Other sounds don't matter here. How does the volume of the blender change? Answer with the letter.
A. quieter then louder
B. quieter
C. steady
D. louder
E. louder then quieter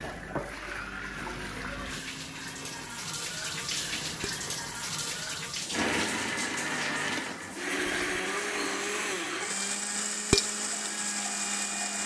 D.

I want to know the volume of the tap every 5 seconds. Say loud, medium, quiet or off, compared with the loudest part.
loud, loud, medium.